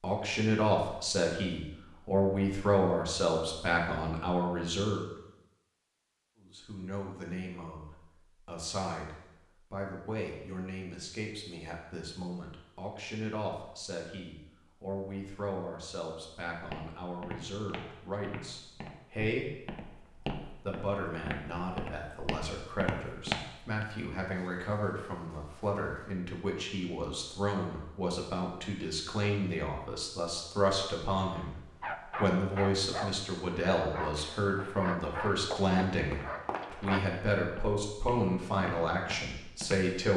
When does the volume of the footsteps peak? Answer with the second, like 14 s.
23 s.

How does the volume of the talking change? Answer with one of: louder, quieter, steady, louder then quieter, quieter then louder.
quieter then louder.